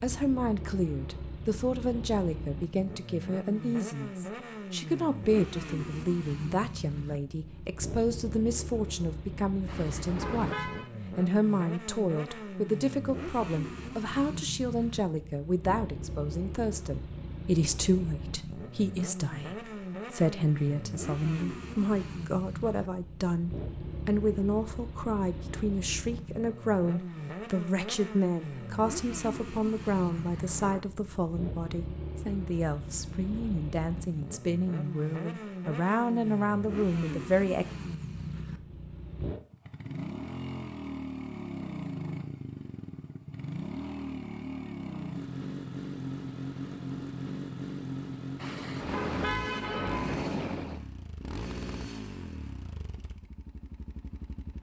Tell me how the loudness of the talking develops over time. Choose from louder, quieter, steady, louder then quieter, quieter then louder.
steady.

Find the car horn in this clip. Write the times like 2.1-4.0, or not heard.
9.7-10.9, 30.1-30.9, 48.4-50.8.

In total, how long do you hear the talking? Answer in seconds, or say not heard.
38 s.